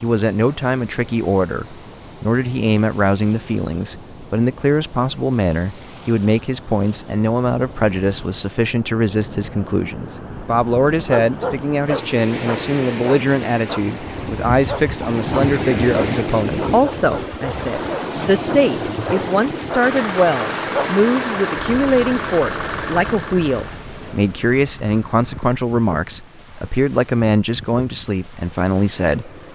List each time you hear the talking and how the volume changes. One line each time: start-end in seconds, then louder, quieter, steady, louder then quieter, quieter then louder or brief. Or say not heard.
0.0-29.4 steady.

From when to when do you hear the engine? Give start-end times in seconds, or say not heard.
19.8-25.6.